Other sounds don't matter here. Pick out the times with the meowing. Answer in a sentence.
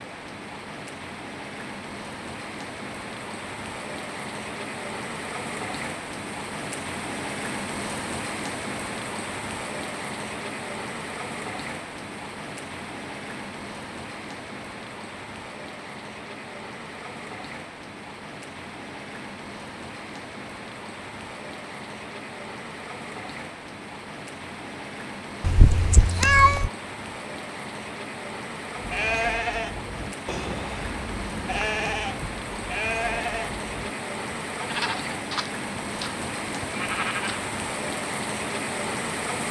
The meowing can be heard from 25.4 to 26.7 s.